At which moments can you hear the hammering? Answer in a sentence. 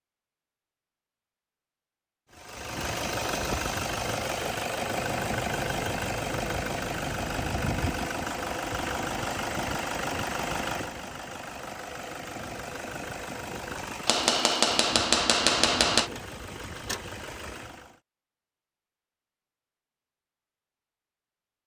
The hammering can be heard from 14.1 to 16.1 s.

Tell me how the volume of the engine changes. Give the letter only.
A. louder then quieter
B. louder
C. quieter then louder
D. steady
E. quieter
E.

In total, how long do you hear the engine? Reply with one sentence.
You can hear the engine for 16 seconds altogether.